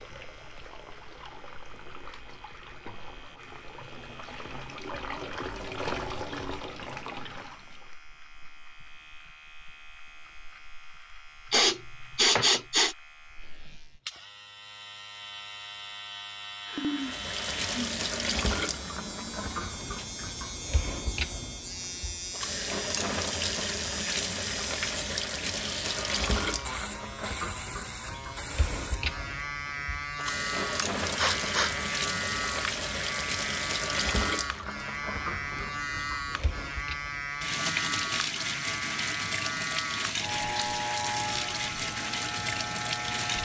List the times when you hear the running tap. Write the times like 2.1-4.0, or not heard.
0.0-8.0, 16.9-43.4.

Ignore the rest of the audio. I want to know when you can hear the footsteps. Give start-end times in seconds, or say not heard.
not heard.